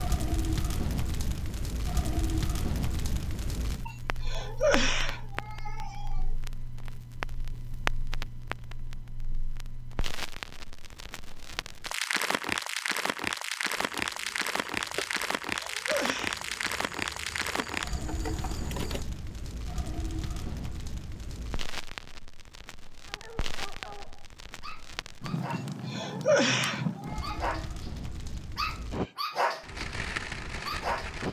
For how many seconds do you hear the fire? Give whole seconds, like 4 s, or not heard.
31 s.